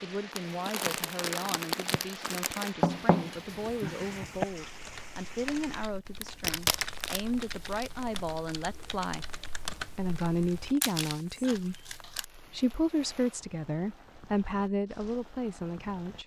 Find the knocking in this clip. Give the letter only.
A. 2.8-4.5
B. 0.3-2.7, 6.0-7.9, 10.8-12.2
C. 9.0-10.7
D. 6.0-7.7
A.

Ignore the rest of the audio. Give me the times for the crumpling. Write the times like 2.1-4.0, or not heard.
0.3-2.7, 6.0-7.9, 10.8-12.2.